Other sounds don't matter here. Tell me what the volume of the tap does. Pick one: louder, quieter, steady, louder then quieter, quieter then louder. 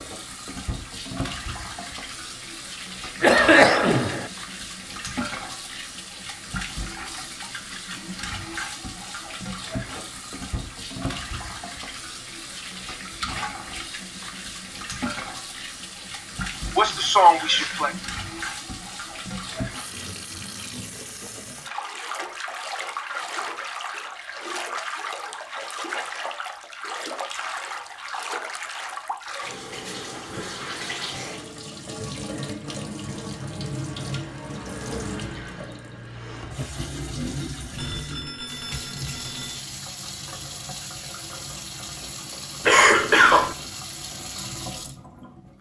steady.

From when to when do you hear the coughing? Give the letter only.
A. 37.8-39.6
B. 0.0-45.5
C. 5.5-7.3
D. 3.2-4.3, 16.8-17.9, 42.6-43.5
D.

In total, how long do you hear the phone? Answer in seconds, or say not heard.
2 s.